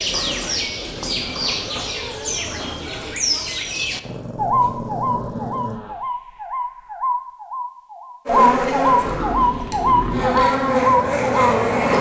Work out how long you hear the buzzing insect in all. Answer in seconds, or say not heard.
4 s.